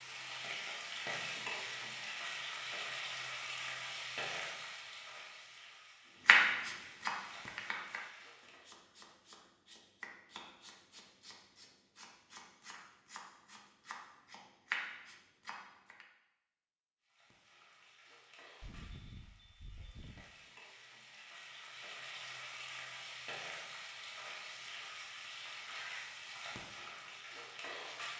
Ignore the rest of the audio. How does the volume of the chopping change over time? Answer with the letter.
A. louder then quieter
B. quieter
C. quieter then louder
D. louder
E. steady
C.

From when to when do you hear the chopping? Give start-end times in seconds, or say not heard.
6.2-16.1.